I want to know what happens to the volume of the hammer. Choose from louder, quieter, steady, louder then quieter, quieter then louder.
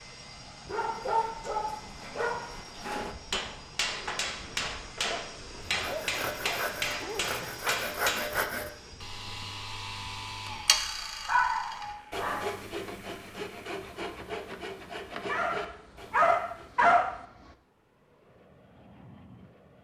steady.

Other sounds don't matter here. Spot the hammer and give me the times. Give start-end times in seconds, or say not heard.
3.3-8.3.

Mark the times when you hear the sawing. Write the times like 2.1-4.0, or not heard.
5.7-16.8.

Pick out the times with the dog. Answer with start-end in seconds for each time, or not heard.
0.7-3.1, 5.1-7.7, 11.2-12.6, 15.2-17.1.